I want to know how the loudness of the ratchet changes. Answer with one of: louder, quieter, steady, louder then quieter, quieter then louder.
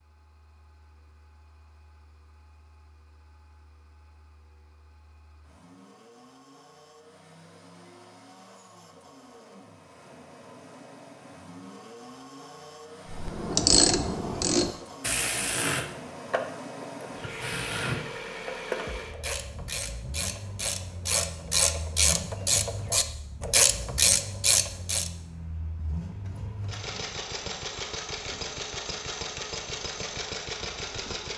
quieter then louder.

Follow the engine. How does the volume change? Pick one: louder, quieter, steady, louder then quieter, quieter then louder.
louder.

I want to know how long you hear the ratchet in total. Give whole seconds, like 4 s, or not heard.
12 s.